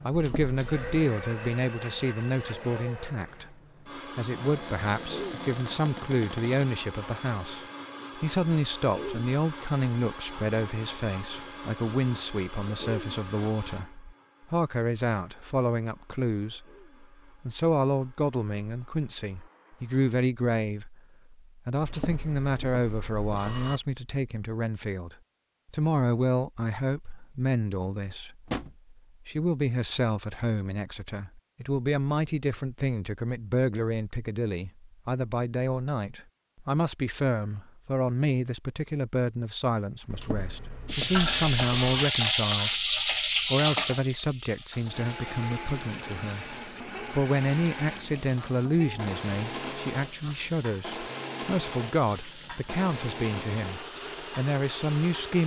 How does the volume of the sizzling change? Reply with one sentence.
The volume of the sizzling goes down.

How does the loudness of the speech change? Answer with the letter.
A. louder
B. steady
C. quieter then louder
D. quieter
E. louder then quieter
B.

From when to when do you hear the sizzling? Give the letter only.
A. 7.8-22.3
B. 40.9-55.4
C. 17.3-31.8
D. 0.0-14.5
B.